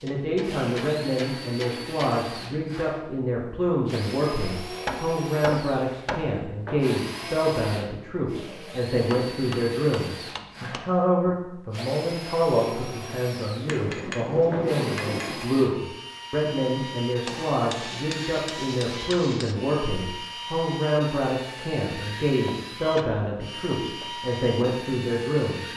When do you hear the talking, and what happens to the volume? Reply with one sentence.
You can hear the talking from 0.0 to 25.7 s, at a steady volume.